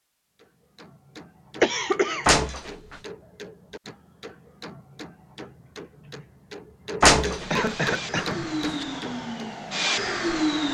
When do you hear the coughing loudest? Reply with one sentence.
The volume of the coughing peaks at 2 seconds.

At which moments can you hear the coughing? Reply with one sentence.
You can hear the coughing from 1.6 to 2.2 s and from 7.5 to 8.4 s.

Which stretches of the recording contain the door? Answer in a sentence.
You can hear the door from 2.2 to 3.0 s and from 7.0 to 8.8 s.